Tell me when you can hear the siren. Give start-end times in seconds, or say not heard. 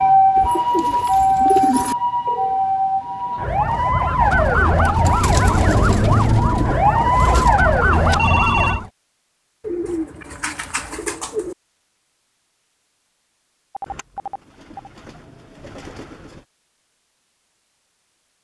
0.0-8.9.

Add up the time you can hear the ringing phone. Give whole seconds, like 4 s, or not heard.
3 s.